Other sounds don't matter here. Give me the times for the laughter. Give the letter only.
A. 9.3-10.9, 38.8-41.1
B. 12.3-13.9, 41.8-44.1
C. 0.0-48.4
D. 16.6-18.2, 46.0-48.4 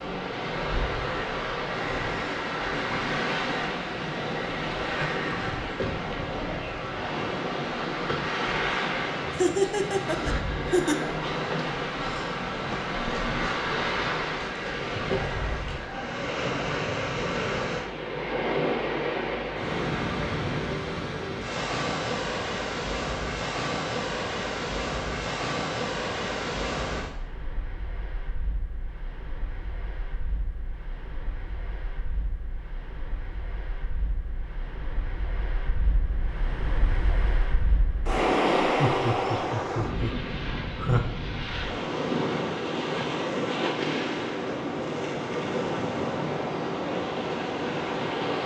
A.